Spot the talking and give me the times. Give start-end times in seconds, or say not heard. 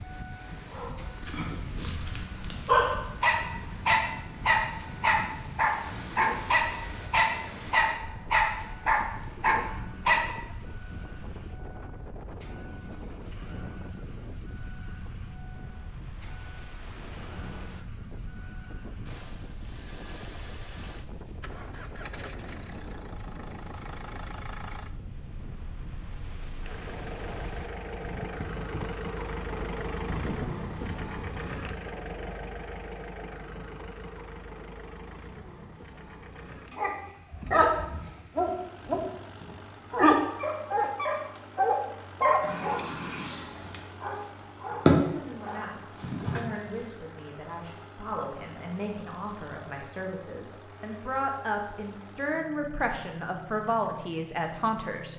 45.0-55.1.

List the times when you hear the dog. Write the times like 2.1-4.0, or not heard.
0.7-10.3, 36.8-46.5.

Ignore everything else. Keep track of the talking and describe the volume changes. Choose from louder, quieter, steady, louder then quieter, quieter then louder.
louder.